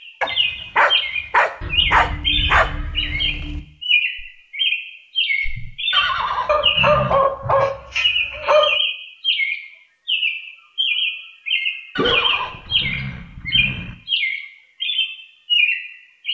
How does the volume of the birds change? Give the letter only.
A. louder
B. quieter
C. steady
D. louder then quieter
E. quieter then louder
C.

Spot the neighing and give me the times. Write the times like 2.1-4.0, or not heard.
1.6-3.6, 5.9-7.2, 11.9-13.9.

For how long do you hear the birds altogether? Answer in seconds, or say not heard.
16 s.